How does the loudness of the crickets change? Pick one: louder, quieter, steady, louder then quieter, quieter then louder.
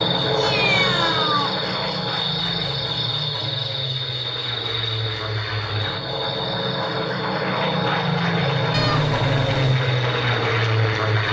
quieter.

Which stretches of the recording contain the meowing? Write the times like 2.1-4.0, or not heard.
0.2-1.5, 8.7-9.8.